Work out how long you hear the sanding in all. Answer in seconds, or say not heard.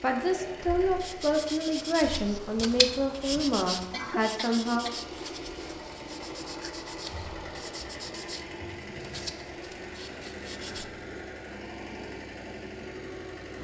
10 s.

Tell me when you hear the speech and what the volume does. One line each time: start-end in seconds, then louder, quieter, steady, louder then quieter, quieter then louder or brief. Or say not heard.
0.0-4.8 steady.